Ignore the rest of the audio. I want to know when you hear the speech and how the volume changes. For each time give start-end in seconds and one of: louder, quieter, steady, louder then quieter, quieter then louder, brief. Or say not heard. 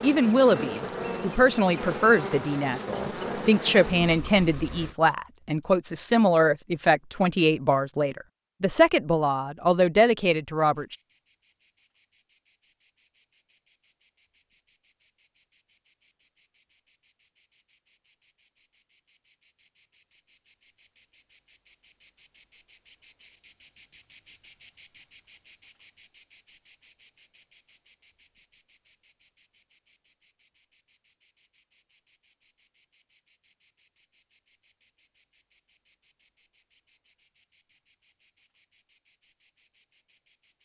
0.0-10.9 steady.